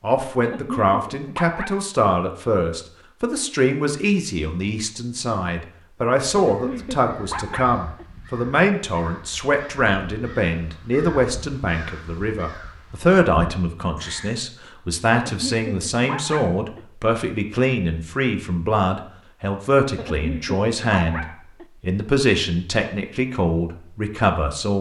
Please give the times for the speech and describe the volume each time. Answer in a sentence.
The speech can be heard from 0.0 to 24.7 s, at a steady volume.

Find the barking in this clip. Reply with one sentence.
The barking can be heard from 0.4 to 1.9 s, from 6.3 to 8.1 s, from 15.2 to 16.9 s and from 19.9 to 21.6 s.